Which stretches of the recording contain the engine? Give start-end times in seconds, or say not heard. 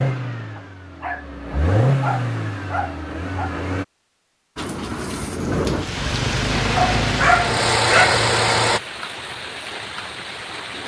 0.0-3.9, 6.5-8.8.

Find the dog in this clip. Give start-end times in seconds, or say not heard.
0.6-3.5, 6.8-8.2.